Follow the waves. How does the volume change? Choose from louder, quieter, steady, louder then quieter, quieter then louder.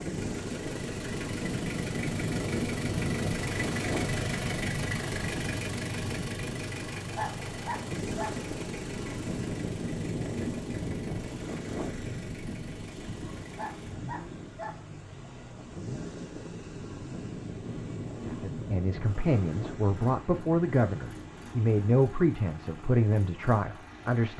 quieter.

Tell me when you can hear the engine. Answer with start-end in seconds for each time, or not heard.
0.0-24.3.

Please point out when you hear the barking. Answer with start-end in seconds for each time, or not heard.
6.8-8.4, 13.3-14.8.